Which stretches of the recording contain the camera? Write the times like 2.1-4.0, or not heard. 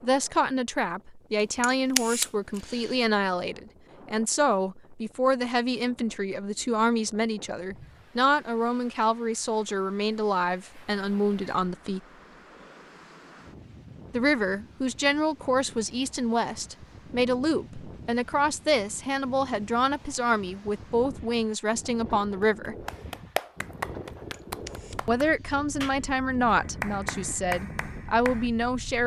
1.6-3.0, 24.3-25.6.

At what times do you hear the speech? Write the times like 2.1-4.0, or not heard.
0.0-12.0, 14.1-22.8, 25.1-29.0.